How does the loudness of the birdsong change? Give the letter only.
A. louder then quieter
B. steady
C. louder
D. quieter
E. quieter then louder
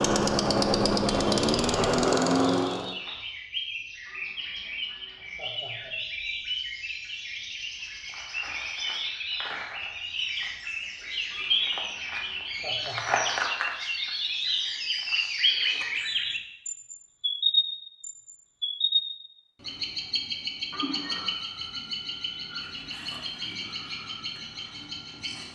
A.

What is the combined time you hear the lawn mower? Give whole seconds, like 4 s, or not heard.
3 s.